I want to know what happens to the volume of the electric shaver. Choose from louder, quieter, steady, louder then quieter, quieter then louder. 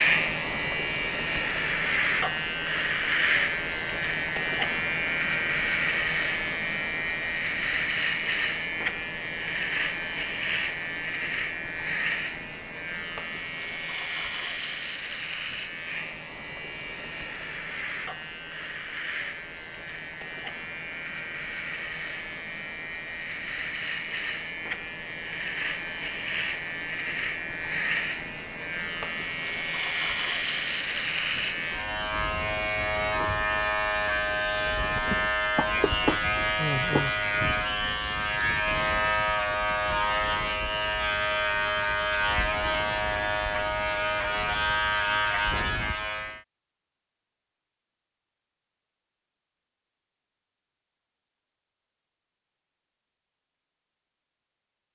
quieter then louder.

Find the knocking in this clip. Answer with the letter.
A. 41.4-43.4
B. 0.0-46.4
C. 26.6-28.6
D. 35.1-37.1
D.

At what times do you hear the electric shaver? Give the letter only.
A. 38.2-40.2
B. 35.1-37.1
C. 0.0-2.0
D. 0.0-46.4
D.